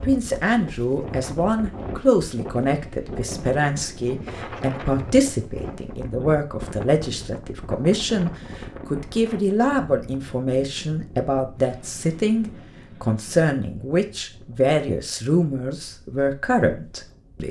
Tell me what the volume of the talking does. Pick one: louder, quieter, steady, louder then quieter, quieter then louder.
steady.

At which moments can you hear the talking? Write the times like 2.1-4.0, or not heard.
0.0-17.4.